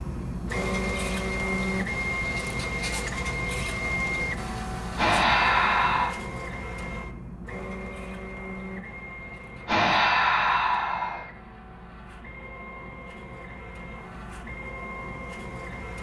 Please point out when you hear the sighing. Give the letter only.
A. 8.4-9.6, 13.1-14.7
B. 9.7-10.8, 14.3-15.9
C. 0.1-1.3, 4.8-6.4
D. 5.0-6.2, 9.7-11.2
D.